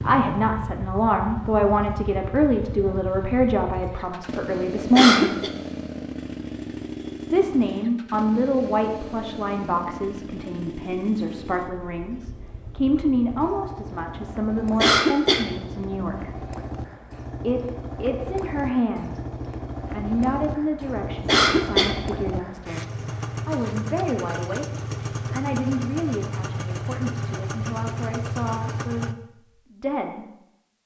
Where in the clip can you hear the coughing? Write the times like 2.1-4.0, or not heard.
5.0-5.5, 14.8-15.4, 21.2-21.9.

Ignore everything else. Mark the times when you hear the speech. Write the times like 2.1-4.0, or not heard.
0.0-5.3, 7.3-16.3, 17.4-19.2, 19.9-24.6, 25.3-30.2.